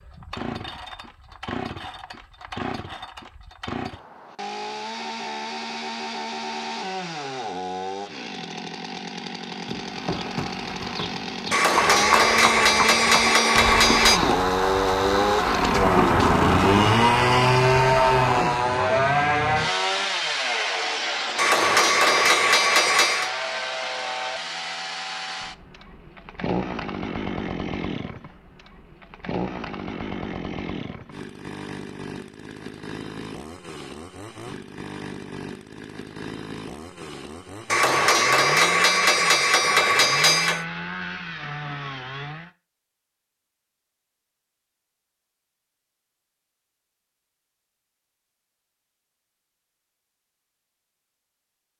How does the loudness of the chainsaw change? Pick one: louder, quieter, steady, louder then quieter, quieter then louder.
louder then quieter.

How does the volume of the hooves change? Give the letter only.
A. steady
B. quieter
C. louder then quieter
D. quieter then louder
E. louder
E.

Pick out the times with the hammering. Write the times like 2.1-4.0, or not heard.
11.5-14.2, 21.4-23.3, 37.7-40.6.